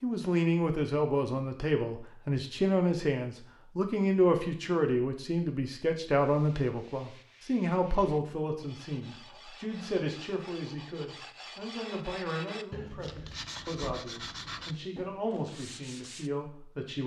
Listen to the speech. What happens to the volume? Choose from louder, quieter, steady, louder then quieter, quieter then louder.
quieter.